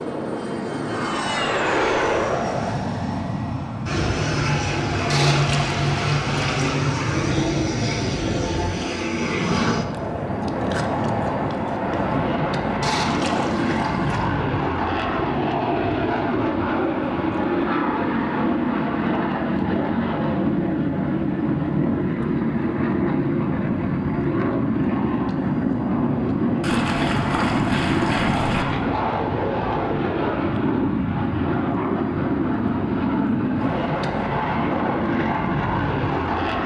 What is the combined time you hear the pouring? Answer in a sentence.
You can hear the pouring for 5 seconds altogether.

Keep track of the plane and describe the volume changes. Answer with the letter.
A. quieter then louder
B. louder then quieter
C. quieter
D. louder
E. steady
E.